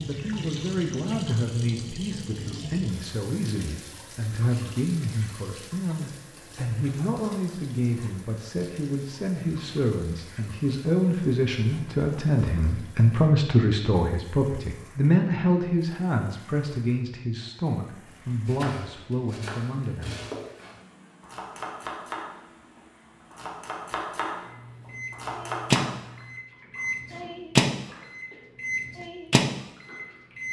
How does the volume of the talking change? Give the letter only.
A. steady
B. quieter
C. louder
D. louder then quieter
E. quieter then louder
D.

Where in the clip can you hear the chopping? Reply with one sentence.
You can hear the chopping from 18.1 to 25.9 s.